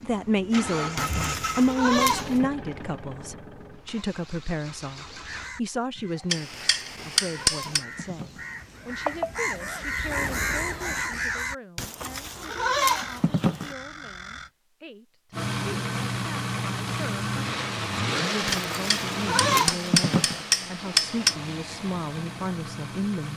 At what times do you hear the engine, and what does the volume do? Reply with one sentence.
You can hear the engine from 0.0 to 5.5 s, getting quieter; and from 15.3 to 23.3 s, getting quieter.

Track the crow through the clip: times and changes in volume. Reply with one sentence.
The crow can be heard from 5.2 to 14.5 s, getting louder then quieter.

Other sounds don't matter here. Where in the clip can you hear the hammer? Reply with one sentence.
You can hear the hammer from 6.3 to 7.8 s and from 18.5 to 21.4 s.